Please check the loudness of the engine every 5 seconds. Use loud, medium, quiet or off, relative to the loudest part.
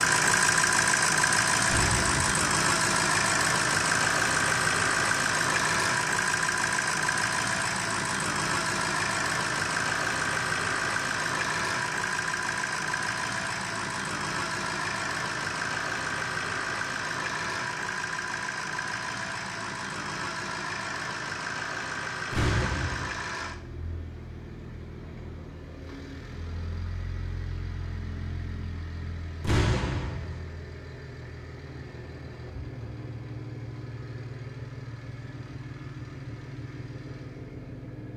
loud, loud, medium, medium, medium, quiet, quiet, quiet.